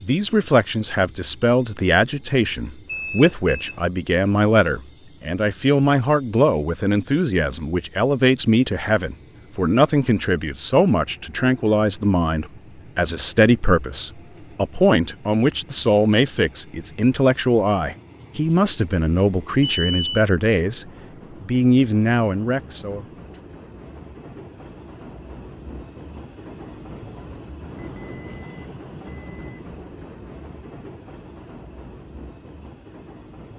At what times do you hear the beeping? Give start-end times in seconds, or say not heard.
2.9-3.9, 19.6-20.2, 27.8-29.6.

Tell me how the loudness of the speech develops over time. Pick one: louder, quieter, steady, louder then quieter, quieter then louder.
steady.